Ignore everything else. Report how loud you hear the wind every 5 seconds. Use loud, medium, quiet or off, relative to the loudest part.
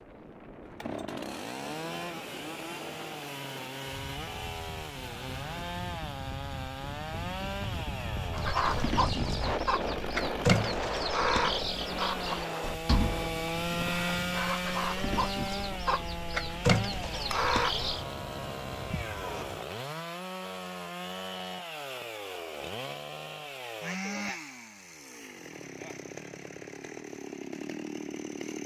medium, loud, loud, medium, off, off.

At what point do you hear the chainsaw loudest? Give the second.
14 s.